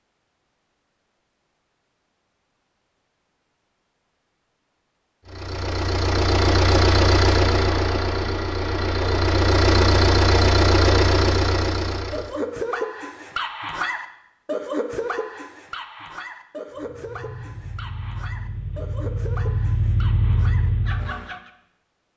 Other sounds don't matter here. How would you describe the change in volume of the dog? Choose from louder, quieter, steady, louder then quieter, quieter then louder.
quieter.